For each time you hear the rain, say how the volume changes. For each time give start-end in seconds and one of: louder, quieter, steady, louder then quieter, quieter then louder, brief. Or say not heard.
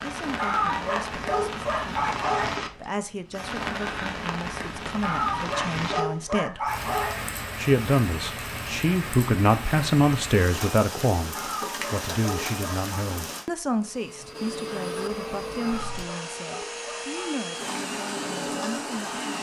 0.0-13.4 steady.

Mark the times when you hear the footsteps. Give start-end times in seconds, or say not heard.
not heard.